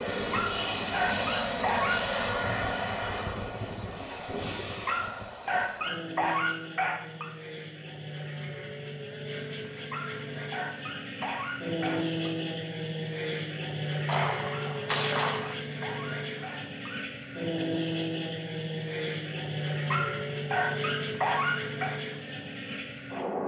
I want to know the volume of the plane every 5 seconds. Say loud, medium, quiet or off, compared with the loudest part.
loud, medium, loud, loud, loud.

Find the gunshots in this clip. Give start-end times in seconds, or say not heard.
14.1-15.6.